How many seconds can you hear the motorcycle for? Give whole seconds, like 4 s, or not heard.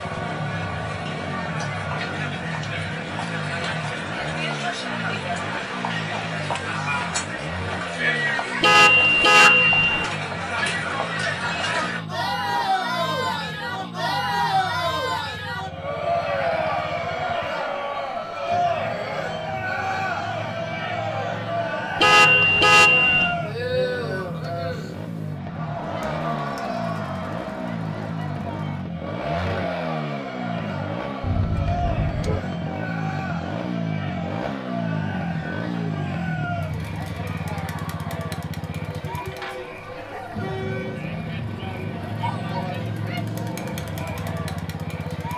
45 s.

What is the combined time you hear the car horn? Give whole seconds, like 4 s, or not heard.
4 s.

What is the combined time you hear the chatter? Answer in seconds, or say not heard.
45 s.